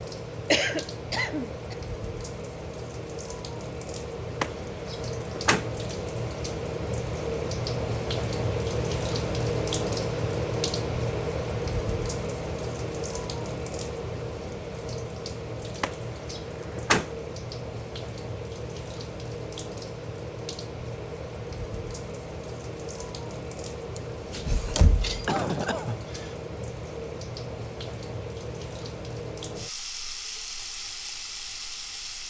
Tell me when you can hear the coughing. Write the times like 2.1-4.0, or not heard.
0.5-1.8, 25.2-26.4.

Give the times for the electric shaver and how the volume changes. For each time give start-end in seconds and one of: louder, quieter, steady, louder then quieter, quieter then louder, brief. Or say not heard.
not heard.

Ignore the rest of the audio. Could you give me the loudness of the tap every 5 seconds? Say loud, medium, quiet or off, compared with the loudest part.
medium, loud, loud, medium, medium, medium, medium.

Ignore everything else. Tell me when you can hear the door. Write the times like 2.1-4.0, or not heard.
4.4-5.7, 15.8-17.1, 23.9-25.4.